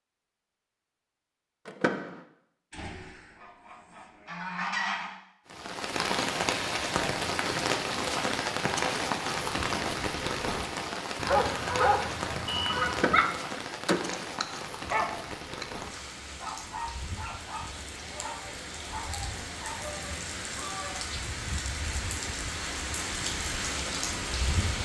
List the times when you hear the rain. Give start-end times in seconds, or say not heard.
5.5-24.8.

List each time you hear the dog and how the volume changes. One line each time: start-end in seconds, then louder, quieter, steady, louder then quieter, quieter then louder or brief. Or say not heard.
11.2-13.3 brief
14.1-19.9 quieter.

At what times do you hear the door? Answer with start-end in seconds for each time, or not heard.
1.6-2.2, 12.8-14.2.